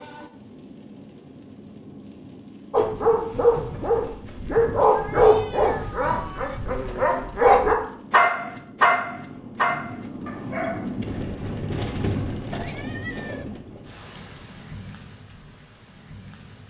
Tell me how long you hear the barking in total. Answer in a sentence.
You can hear the barking for 8 seconds altogether.